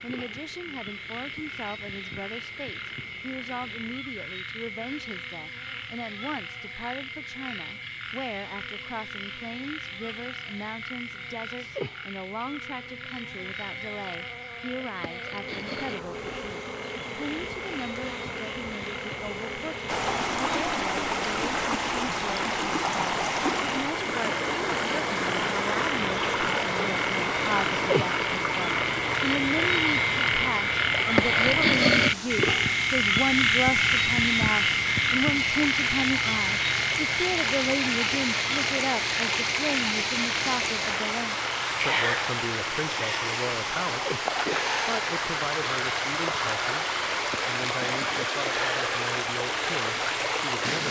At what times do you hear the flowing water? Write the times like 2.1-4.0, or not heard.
19.9-50.8.